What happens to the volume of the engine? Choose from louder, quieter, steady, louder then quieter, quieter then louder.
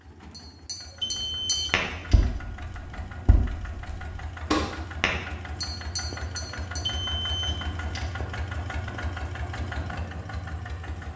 louder.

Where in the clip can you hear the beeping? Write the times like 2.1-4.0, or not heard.
1.0-2.1, 6.8-8.0.